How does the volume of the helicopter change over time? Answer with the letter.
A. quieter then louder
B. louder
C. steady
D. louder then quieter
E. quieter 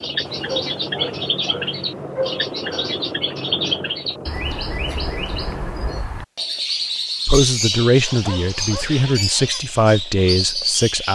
C.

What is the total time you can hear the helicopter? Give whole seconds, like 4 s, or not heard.
6 s.